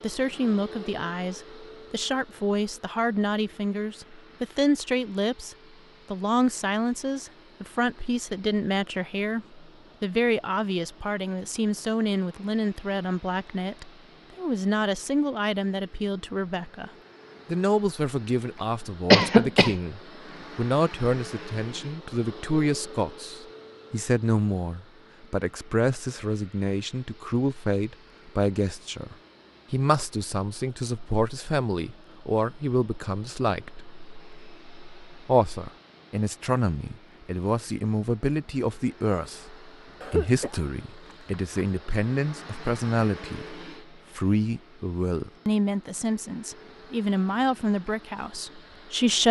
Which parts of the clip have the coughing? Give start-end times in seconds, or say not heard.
19.1-19.8, 40.0-41.6.